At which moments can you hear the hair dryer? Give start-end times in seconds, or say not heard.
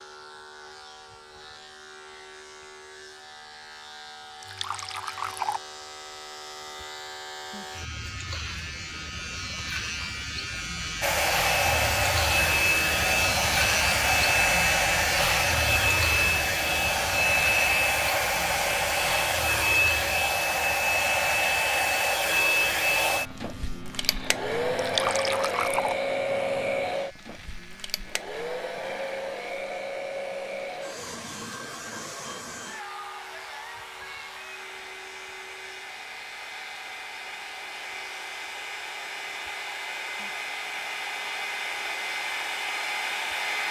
11.0-43.6.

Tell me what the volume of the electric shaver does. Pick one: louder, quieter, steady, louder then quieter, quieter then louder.
louder then quieter.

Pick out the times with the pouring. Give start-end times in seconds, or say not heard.
4.4-5.6, 24.8-25.9.